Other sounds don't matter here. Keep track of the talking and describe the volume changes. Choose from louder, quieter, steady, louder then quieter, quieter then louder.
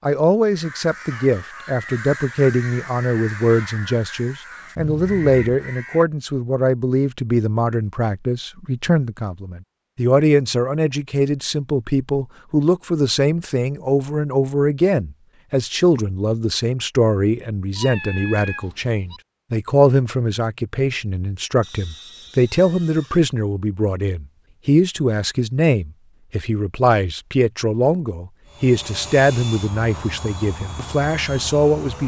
steady.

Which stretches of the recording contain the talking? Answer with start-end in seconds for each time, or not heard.
0.1-32.0.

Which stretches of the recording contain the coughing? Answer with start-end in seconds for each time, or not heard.
not heard.